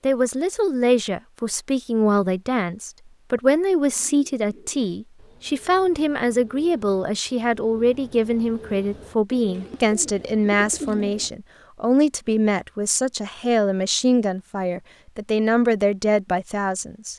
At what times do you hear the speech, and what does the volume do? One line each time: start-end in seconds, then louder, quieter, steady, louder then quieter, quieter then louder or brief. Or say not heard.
0.0-17.1 steady.